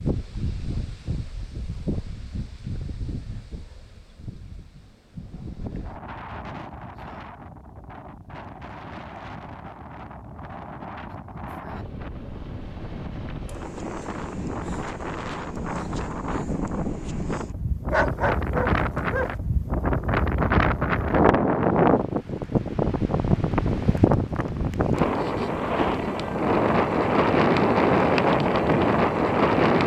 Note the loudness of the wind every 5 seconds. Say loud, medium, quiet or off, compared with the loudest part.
quiet, quiet, quiet, medium, loud, loud.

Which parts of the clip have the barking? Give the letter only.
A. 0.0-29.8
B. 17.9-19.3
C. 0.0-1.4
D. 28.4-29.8
B.